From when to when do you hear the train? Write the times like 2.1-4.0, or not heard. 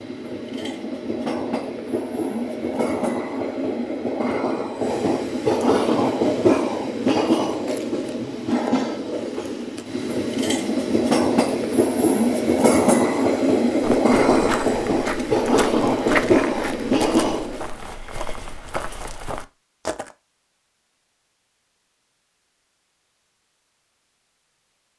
0.0-17.6.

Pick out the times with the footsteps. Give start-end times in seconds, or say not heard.
13.8-20.1.